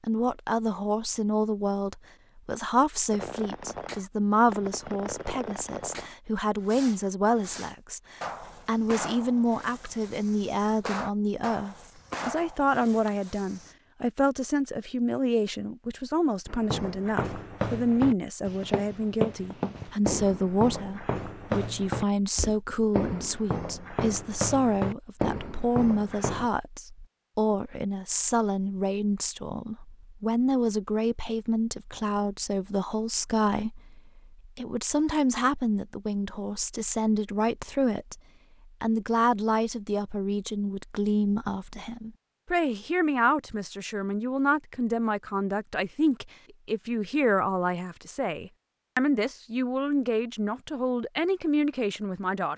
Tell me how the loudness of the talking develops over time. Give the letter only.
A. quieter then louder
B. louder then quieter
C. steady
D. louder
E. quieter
C.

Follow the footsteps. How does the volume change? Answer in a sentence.
The loudness of the footsteps stays about the same.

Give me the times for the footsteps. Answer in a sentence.
You can hear the footsteps from 16.4 to 26.5 s.